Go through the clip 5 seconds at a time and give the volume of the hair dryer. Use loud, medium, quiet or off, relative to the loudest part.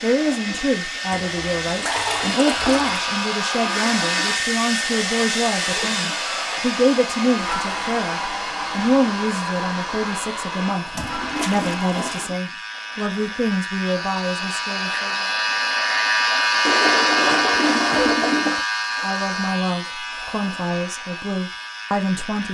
loud, loud, medium, off, off.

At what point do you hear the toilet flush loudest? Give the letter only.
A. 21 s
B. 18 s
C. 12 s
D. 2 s
B.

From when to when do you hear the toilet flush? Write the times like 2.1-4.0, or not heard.
1.1-3.0, 10.9-12.3, 16.6-18.6.